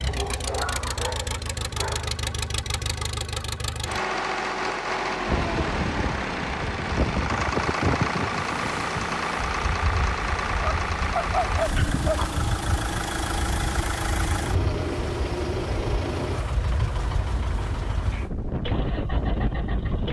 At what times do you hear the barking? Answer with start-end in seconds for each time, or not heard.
0.1-2.2, 10.8-12.3.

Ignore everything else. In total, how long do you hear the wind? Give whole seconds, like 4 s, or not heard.
15 s.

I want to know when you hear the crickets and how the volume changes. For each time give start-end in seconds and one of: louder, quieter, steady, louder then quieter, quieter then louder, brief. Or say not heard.
not heard.